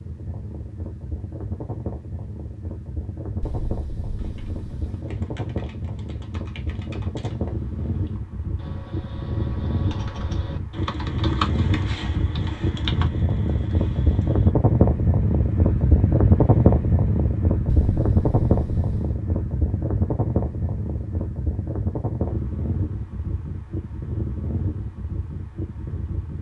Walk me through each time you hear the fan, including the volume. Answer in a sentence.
You can hear the fan from 0.0 to 26.3 s, getting louder then quieter.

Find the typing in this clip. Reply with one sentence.
You can hear the typing from 4.2 to 14.6 s.